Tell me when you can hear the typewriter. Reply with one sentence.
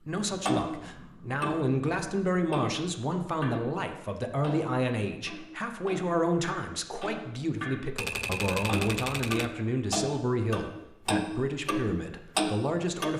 The typewriter can be heard from 8.0 to 9.6 s.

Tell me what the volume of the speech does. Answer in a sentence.
The volume of the speech stays about the same.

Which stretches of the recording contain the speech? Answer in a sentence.
You can hear the speech from 0.1 to 13.1 s.